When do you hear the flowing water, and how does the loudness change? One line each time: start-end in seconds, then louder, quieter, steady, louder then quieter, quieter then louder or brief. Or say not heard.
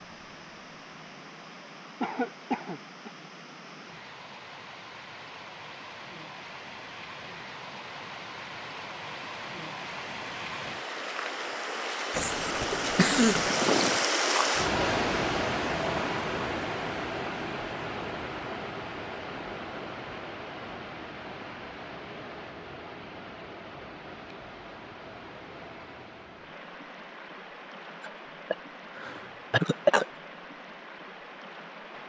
0.0-32.0 louder then quieter.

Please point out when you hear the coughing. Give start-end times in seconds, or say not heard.
2.0-3.1, 12.2-13.5, 28.0-30.1.